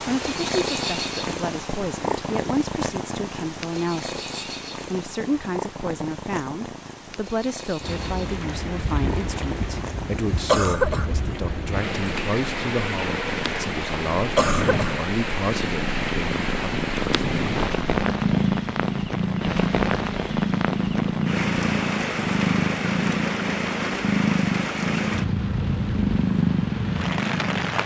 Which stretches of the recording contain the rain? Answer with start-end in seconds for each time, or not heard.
7.8-27.8.